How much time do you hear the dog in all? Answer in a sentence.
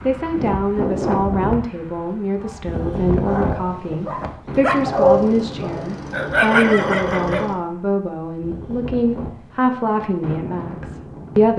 You can hear the dog for 5 seconds altogether.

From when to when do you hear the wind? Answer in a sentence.
You can hear the wind from 0.0 to 11.5 s.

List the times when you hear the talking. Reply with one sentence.
You can hear the talking from 0.0 to 11.5 s.